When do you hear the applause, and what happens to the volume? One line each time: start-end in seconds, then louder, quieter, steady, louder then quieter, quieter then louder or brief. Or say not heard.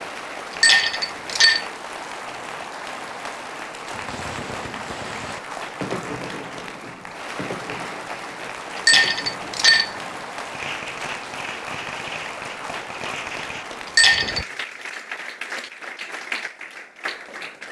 0.0-17.6 steady.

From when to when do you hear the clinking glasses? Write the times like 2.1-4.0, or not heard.
0.6-1.6, 8.8-9.9, 13.8-14.4.